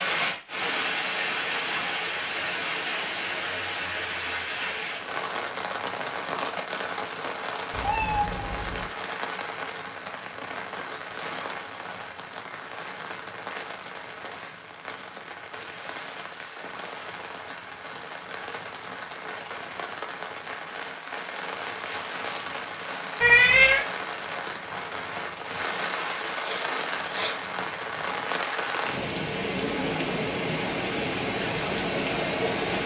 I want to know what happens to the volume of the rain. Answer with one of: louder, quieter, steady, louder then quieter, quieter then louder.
quieter then louder.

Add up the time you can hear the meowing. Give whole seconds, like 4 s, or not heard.
2 s.